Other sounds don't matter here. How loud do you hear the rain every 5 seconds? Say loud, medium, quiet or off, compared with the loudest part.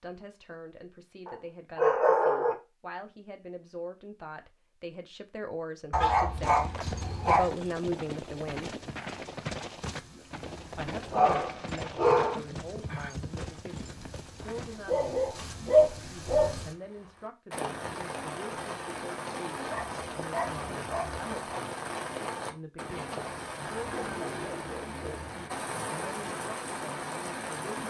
off, quiet, quiet, loud, loud, loud.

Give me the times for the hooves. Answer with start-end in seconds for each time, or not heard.
6.3-14.8.